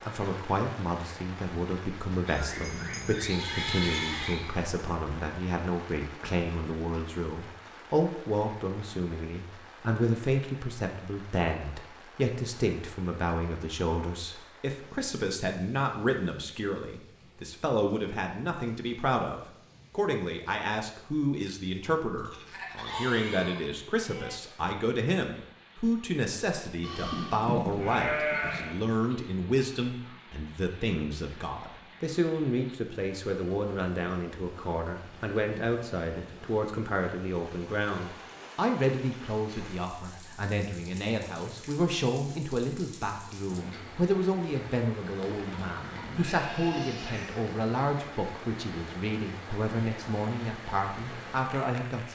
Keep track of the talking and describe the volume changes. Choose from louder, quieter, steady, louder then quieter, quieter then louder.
steady.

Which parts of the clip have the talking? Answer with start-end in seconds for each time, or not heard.
0.0-52.1.